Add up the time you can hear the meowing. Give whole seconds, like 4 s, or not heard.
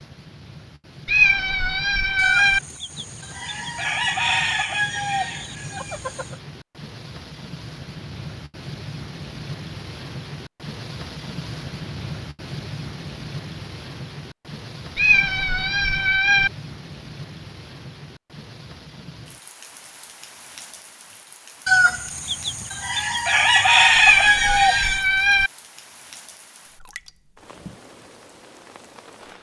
5 s.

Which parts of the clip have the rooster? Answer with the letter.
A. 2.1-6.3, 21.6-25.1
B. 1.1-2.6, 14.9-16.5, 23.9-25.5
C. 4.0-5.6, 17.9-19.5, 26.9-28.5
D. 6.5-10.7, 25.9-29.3
A.